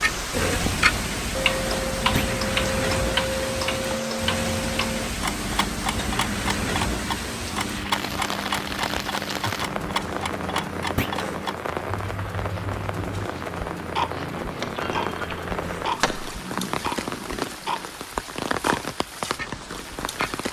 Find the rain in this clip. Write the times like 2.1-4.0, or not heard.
0.0-20.4.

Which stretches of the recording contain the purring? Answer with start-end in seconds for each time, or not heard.
12.6-17.9.